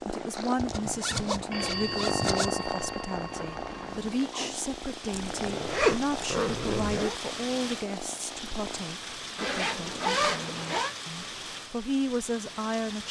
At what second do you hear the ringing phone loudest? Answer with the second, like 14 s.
2 s.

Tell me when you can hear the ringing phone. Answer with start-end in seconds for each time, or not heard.
1.5-4.2.